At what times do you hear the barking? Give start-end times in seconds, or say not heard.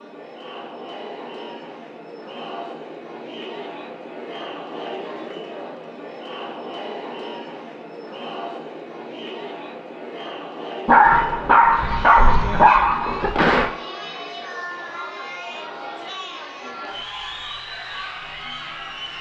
10.8-13.7.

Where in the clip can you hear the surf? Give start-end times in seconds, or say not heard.
not heard.